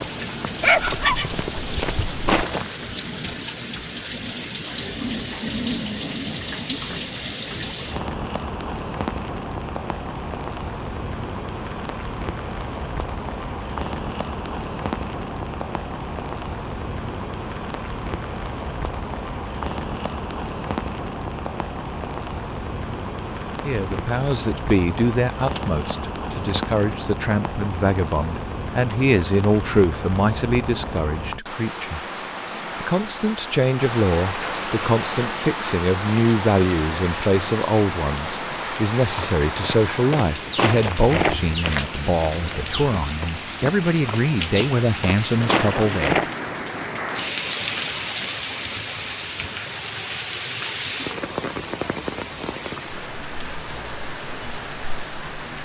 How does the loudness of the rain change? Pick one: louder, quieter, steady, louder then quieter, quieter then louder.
steady.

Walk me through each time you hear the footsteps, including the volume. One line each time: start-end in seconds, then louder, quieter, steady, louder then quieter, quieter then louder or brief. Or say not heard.
0.0-2.9 brief
39.0-46.4 quieter then louder.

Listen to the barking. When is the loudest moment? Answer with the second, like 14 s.
1 s.